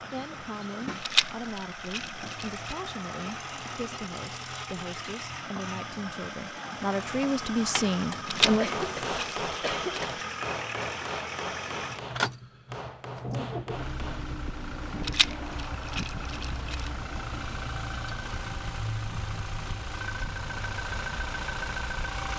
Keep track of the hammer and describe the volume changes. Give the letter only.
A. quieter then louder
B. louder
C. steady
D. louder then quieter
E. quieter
E.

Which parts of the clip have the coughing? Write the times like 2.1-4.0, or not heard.
8.6-10.3.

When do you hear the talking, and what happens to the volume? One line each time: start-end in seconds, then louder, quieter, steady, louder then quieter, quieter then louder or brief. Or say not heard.
0.1-8.8 louder.